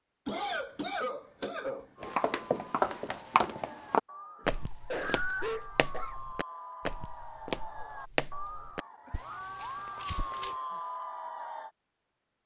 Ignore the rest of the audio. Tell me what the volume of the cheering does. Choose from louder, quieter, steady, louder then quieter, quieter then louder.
louder.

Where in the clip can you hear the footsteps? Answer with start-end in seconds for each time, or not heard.
2.0-10.6.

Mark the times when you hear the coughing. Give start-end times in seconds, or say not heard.
0.2-2.1, 4.4-6.2, 9.1-10.8.